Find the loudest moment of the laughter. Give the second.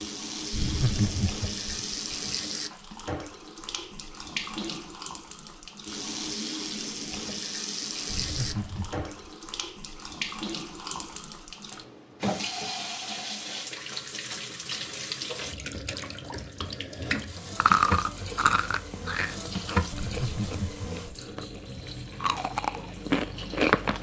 1 s.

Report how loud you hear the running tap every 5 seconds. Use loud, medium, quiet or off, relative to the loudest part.
loud, loud, loud, loud, medium.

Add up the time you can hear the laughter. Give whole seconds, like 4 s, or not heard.
4 s.